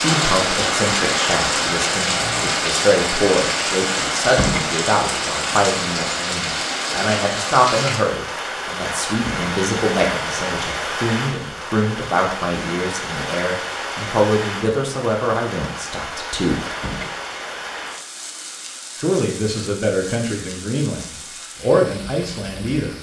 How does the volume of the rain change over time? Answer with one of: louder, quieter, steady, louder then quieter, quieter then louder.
quieter.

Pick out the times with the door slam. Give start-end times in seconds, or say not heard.
4.2-4.7, 9.1-9.6, 16.6-17.1.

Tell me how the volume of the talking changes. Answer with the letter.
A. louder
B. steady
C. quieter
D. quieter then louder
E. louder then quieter
B.